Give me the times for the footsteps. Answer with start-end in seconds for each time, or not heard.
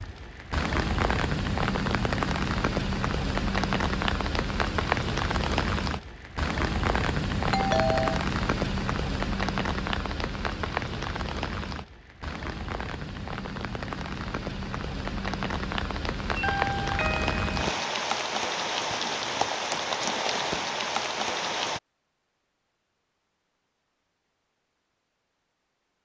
not heard.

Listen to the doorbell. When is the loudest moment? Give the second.
8 s.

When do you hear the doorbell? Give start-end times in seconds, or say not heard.
7.5-8.2, 16.4-17.6.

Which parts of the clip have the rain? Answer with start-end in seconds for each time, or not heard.
0.0-21.8.